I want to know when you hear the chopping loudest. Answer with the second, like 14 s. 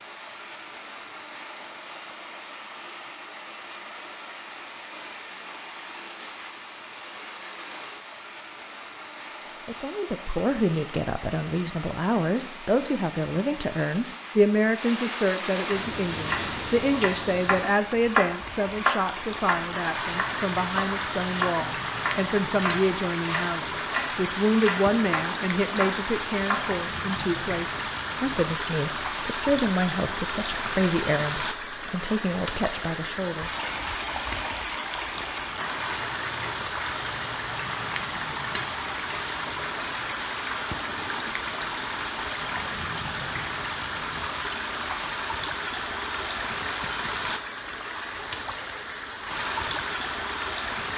18 s.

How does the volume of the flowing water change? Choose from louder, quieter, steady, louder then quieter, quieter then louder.
louder.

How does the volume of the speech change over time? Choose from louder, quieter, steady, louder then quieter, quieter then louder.
steady.